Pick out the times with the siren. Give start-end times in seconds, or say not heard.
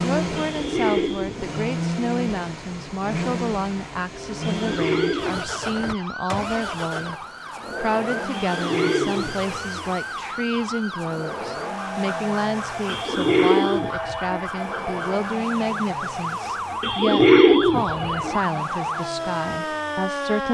4.8-20.4.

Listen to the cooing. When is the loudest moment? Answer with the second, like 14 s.
17 s.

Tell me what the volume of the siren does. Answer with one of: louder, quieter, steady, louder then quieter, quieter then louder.
louder.